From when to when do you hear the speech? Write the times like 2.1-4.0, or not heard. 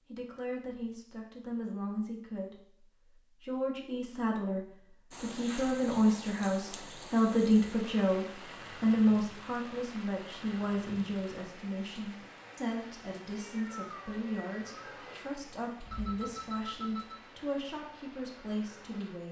0.1-19.2.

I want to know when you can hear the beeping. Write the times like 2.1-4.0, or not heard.
15.8-17.2.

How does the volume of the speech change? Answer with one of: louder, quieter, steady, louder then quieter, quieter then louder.
louder then quieter.